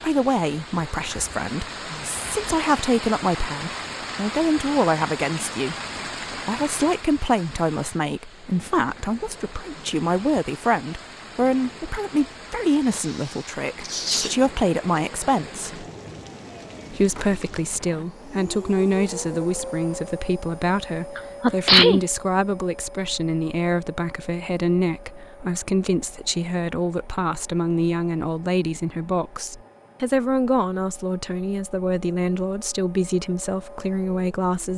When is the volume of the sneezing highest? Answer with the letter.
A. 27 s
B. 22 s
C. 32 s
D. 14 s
B.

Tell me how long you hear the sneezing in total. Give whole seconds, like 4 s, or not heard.
2 s.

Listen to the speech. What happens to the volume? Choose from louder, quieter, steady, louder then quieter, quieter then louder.
steady.